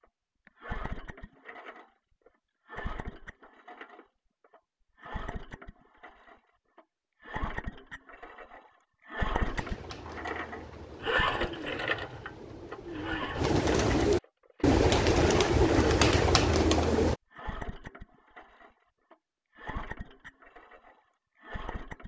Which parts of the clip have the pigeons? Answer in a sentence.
You can hear the pigeons from 9.4 to 17.1 s.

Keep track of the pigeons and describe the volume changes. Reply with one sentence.
The volume of the pigeons goes up.